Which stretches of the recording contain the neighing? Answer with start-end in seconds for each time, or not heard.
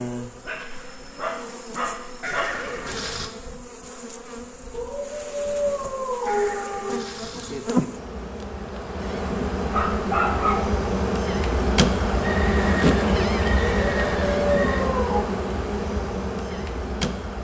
2.2-3.3, 6.2-7.7, 12.2-14.9.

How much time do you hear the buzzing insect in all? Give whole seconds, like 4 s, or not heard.
17 s.